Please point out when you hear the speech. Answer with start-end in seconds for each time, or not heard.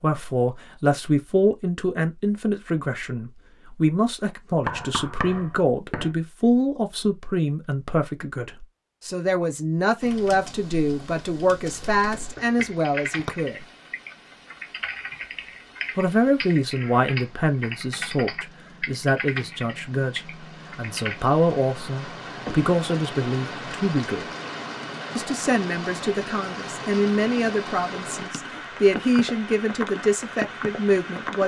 0.0-13.7, 15.9-24.2, 25.1-31.4.